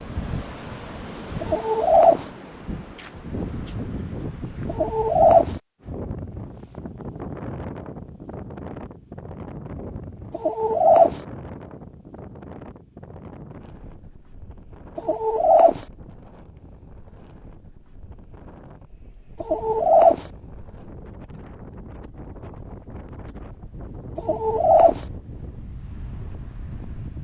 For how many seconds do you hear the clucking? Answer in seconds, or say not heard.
5 s.